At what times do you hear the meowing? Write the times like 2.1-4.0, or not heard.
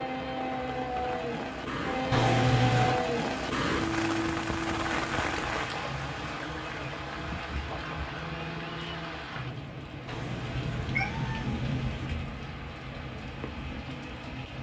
2.1-3.0, 10.1-12.1.